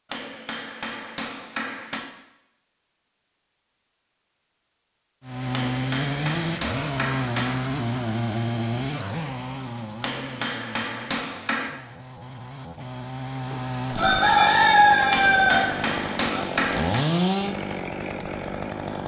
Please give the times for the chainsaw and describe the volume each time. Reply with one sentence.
The chainsaw can be heard from 5.2 to 19.0 s, getting quieter then louder.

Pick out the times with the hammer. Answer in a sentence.
The hammer can be heard from 0.1 to 2.0 s, from 5.5 to 7.6 s, from 10.0 to 11.7 s and from 15.1 to 17.1 s.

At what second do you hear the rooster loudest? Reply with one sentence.
The volume of the rooster peaks at 15 seconds.